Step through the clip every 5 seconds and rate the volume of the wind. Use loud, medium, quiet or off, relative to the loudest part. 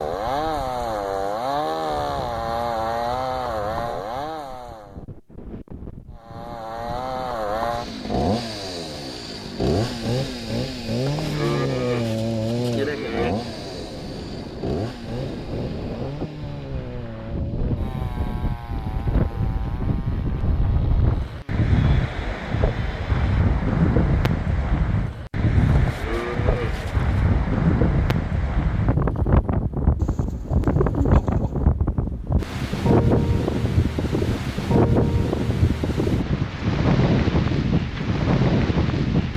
quiet, quiet, quiet, medium, loud, loud, loud, loud.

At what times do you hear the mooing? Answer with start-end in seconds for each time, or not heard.
10.8-13.3, 25.6-27.1.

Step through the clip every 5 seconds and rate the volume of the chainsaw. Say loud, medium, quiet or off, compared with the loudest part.
loud, loud, loud, medium, quiet, off, off, off.